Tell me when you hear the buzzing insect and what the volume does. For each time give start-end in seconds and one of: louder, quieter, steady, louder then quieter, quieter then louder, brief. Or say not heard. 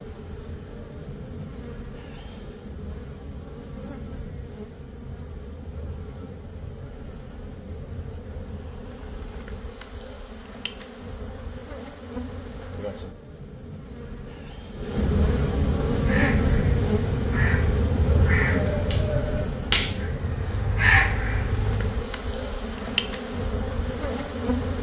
0.0-24.7 louder then quieter.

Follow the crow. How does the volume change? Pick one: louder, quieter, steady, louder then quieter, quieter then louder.
louder.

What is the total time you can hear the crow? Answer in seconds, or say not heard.
6 s.